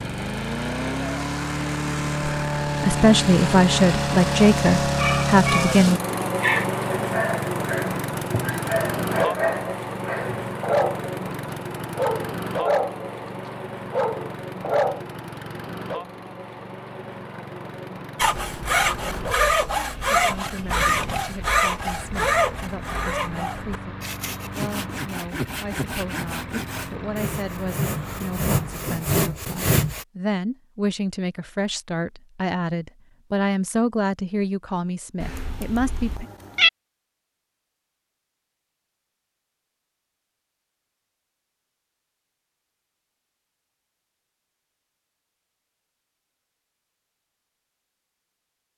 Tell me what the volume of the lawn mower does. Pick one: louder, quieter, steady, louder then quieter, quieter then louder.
quieter.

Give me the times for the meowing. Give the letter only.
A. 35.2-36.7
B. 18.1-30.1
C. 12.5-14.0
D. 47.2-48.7
A.